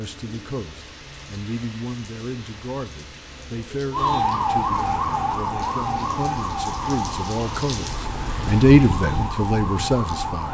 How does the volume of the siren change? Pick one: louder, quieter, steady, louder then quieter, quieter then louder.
quieter then louder.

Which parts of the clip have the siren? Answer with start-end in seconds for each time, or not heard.
3.9-10.4.